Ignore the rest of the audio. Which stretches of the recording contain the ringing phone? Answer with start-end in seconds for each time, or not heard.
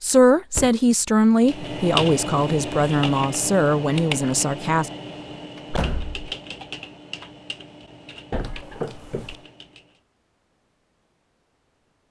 not heard.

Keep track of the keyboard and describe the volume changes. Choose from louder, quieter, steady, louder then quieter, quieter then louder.
quieter.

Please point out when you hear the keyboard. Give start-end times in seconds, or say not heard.
1.4-10.0.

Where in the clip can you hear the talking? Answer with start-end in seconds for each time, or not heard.
0.0-4.9.